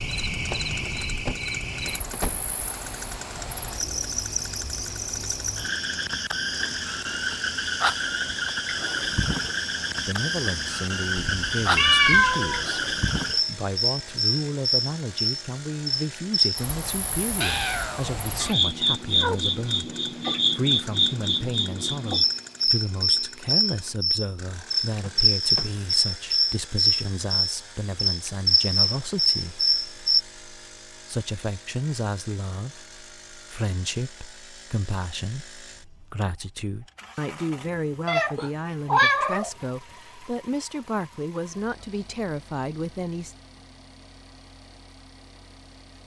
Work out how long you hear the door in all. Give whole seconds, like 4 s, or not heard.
3 s.